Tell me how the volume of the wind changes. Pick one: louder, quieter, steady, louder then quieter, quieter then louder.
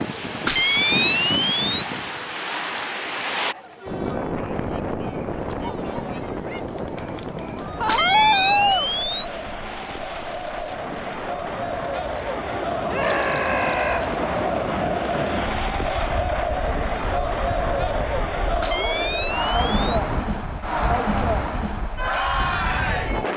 quieter.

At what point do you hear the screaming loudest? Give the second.
8 s.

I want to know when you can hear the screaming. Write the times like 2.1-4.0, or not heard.
7.8-8.9, 12.9-14.1.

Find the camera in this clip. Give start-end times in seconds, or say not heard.
0.5-2.3, 7.8-9.8, 18.6-20.1.